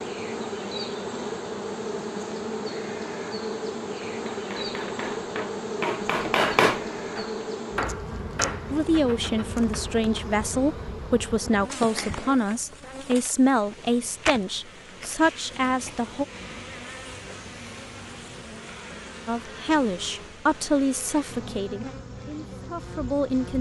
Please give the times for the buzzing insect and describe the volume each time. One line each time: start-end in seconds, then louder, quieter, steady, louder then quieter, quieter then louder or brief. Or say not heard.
0.0-23.5 quieter.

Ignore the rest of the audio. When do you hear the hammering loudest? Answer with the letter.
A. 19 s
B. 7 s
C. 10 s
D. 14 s
B.